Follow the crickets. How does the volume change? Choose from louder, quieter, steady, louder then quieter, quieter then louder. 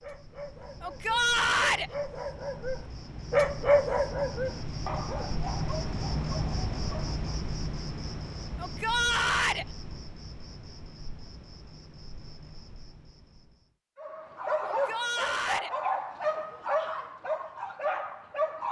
louder then quieter.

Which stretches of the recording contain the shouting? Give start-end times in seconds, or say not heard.
0.8-1.9, 8.6-9.7, 14.7-15.7.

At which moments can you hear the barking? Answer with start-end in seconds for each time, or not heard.
0.0-7.2, 13.9-18.6.